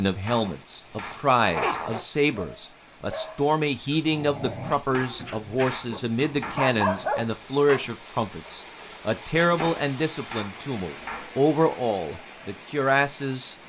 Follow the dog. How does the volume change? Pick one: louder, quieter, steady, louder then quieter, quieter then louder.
louder then quieter.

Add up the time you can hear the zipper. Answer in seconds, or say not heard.
2 s.